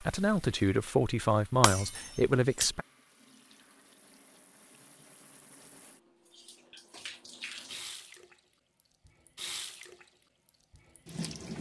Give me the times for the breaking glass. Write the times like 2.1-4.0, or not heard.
1.6-2.7.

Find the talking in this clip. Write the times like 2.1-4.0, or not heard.
0.0-2.9.